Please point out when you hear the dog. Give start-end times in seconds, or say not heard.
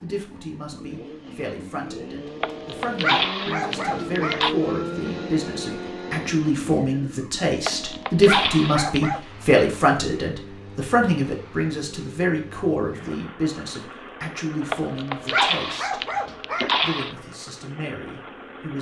2.4-4.5, 7.7-9.2, 14.7-17.1.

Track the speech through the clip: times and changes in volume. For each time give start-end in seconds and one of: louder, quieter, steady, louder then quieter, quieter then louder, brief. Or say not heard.
0.0-16.1 louder then quieter
16.8-18.7 brief.